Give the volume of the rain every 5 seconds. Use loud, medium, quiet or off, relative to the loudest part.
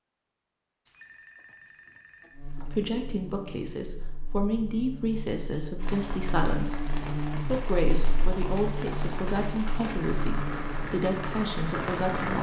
off, medium, loud.